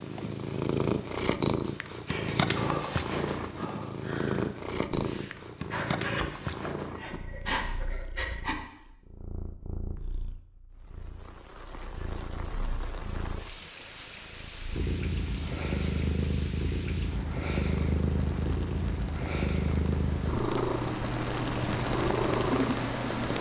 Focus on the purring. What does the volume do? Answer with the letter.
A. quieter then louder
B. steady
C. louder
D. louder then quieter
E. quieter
A.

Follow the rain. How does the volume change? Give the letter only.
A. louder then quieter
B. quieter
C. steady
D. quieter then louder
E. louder
E.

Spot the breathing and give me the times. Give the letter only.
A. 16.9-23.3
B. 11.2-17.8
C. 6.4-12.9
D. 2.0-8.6
D.